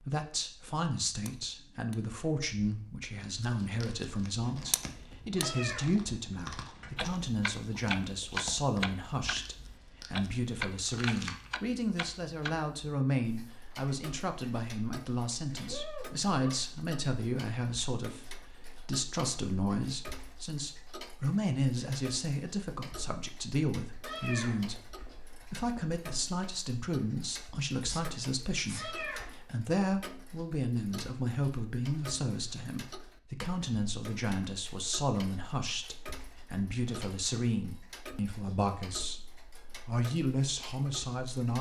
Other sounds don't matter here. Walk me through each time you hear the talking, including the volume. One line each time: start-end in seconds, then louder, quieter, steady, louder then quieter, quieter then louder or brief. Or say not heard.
0.0-41.5 steady.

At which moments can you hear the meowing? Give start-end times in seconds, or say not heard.
5.3-7.0, 24.1-25.4, 28.8-29.3.